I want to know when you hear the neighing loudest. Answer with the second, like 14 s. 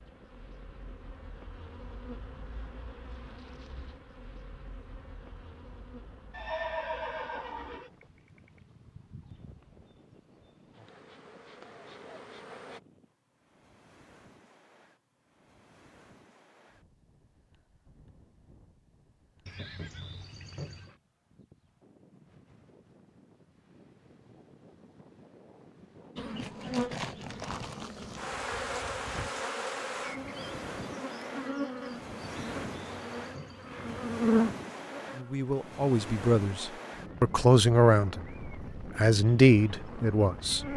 7 s.